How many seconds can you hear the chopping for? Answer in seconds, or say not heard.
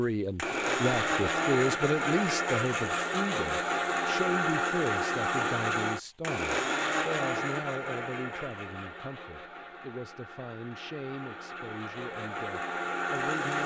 not heard.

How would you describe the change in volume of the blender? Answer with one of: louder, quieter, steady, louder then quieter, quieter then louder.
quieter then louder.